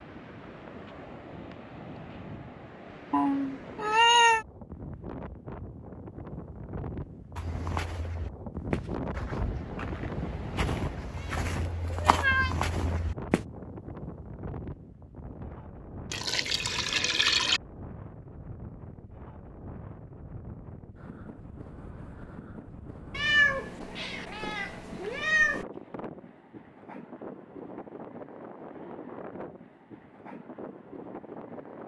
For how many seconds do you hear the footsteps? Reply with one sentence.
You can hear the footsteps for 6 seconds altogether.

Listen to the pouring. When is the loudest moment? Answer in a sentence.
The volume of the pouring peaks at 17 seconds.